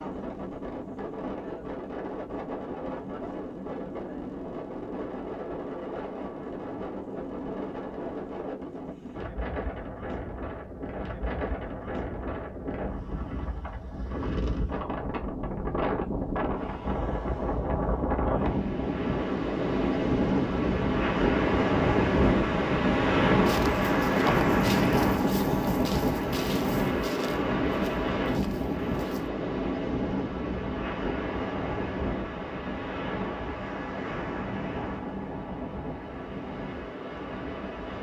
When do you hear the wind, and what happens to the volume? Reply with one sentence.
You can hear the wind from 0.0 to 37.9 s, getting louder then quieter.